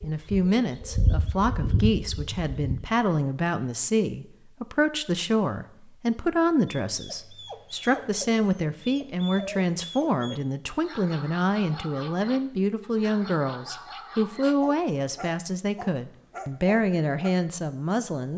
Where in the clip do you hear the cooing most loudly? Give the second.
1 s.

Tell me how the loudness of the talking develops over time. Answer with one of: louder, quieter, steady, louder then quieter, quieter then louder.
steady.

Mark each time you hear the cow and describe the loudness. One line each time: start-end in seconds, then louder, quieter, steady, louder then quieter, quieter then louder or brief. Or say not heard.
not heard.